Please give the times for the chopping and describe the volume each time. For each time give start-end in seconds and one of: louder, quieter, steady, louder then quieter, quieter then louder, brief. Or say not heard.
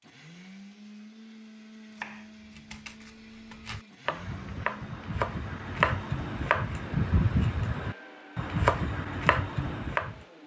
1.9-10.2 louder.